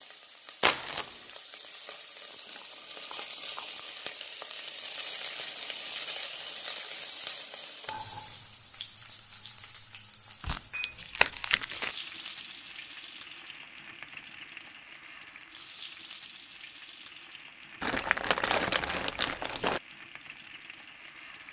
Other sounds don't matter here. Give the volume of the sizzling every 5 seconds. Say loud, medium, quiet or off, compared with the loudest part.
loud, loud, medium, medium, medium.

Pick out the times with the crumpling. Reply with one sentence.
You can hear the crumpling from 0.6 to 1.3 s, from 10.4 to 11.9 s and from 17.8 to 19.8 s.